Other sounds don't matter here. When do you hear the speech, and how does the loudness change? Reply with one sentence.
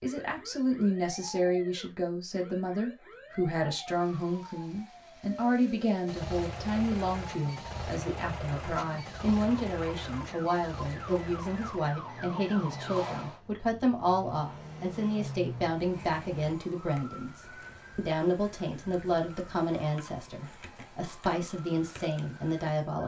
You can hear the speech from 0.0 to 23.0 s, at a steady volume.